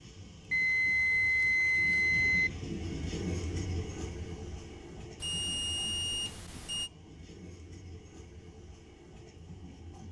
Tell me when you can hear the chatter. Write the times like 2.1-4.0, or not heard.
not heard.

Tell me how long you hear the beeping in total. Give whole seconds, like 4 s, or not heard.
4 s.